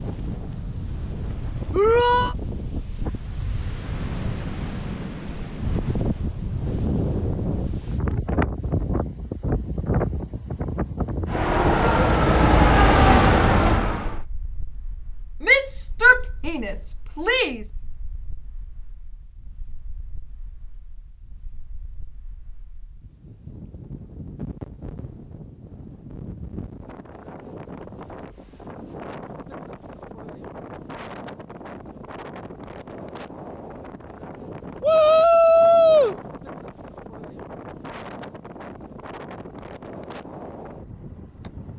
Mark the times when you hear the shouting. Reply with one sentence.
You can hear the shouting from 1.7 to 2.4 s, from 15.4 to 17.6 s and from 34.8 to 36.1 s.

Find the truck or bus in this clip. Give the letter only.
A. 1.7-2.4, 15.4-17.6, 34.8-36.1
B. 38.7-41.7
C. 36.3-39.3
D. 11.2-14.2
D.